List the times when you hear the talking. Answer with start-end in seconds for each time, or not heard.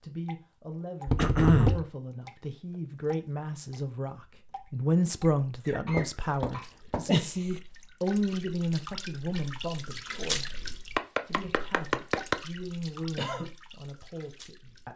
0.0-14.9.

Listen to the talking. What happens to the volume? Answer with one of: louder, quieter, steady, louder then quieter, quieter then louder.
louder then quieter.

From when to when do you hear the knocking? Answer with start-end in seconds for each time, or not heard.
1.1-1.8, 6.0-7.5, 10.9-12.4.